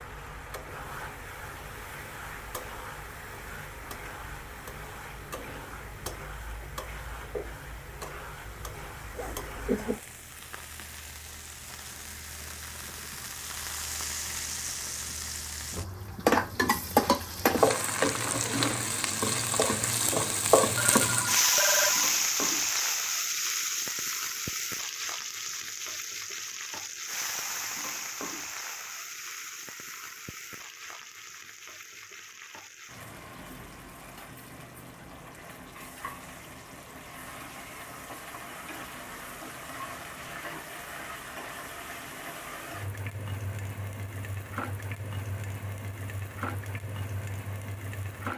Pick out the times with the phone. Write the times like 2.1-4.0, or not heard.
20.8-22.1.